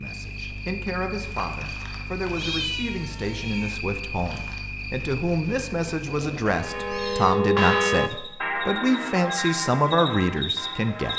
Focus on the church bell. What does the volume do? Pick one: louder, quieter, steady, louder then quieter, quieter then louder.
louder then quieter.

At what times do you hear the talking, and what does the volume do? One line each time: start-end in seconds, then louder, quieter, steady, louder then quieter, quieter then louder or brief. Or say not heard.
0.0-11.1 louder.